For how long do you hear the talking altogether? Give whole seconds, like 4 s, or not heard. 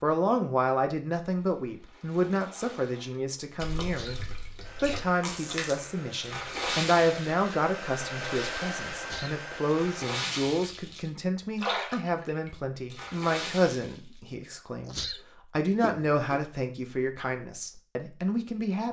19 s.